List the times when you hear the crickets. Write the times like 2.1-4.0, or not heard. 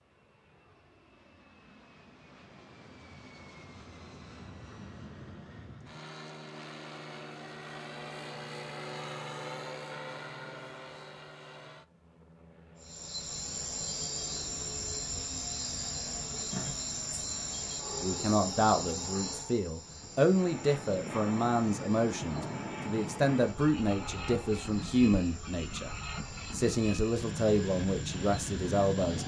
12.8-29.2.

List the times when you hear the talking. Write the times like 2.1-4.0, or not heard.
18.0-25.9, 26.5-29.2.